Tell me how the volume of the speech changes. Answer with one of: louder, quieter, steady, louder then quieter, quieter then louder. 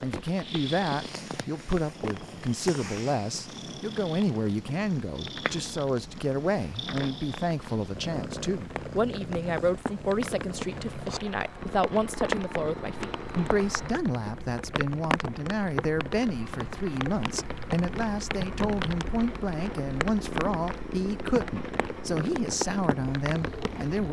steady.